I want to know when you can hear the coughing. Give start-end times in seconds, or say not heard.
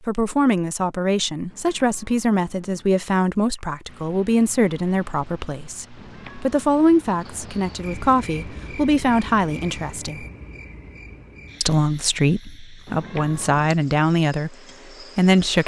not heard.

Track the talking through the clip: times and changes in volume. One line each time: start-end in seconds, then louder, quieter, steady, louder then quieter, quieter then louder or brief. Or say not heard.
0.1-10.2 steady
11.6-14.6 brief
15.2-15.6 brief.